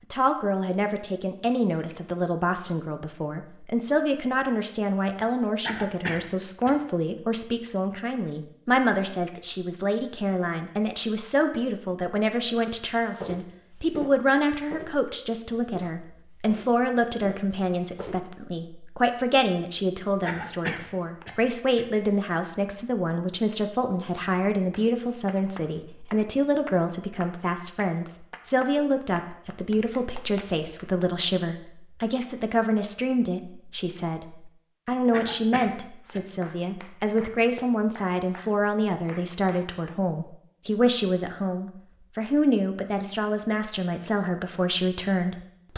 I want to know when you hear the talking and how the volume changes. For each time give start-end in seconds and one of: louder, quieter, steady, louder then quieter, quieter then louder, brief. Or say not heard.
0.1-45.7 steady.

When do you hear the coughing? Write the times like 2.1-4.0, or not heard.
5.7-6.8, 20.2-21.9, 35.1-36.2.